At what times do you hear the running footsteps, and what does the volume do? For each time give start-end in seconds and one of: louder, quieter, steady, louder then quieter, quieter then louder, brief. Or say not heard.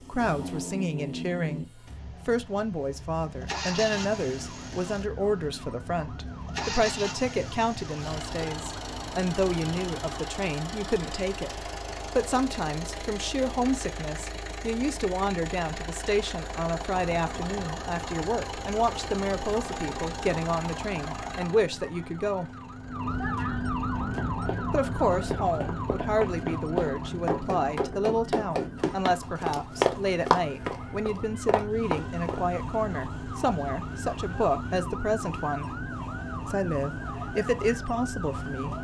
23.9-32.5 louder then quieter.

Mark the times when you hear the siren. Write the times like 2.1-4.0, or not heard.
3.7-10.2, 16.9-38.7.